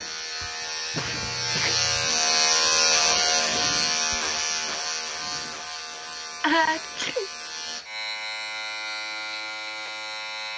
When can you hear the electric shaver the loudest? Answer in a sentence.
The loudest moment of the electric shaver is at 3 seconds.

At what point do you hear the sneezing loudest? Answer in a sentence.
The loudest moment of the sneezing is at 7 seconds.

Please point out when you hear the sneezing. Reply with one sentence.
The sneezing can be heard from 0.9 to 2.1 s and from 6.4 to 7.3 s.